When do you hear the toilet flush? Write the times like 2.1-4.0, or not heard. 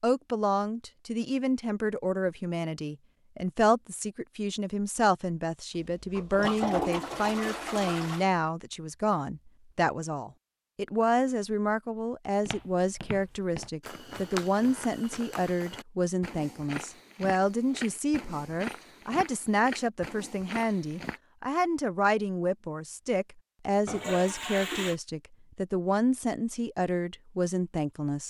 5.9-8.2, 23.9-24.9.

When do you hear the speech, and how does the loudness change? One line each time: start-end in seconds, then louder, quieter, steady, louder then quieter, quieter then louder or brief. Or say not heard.
0.0-28.2 steady.